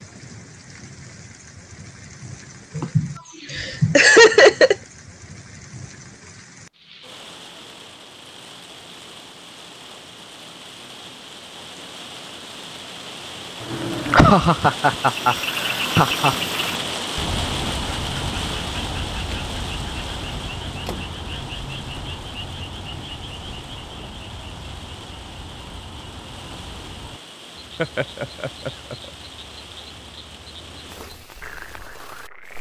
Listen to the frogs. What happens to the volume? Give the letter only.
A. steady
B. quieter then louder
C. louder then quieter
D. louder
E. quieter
E.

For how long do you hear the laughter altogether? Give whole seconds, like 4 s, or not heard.
6 s.